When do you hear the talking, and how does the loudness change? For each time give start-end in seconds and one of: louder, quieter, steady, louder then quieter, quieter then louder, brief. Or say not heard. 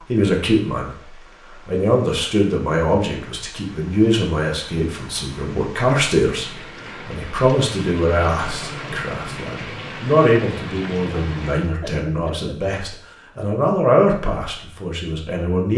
0.1-15.7 steady.